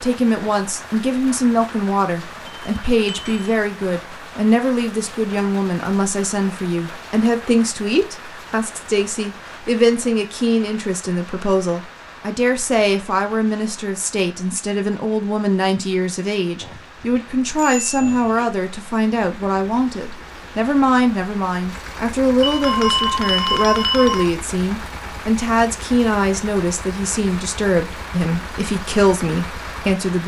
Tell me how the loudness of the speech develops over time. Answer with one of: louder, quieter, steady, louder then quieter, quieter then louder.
steady.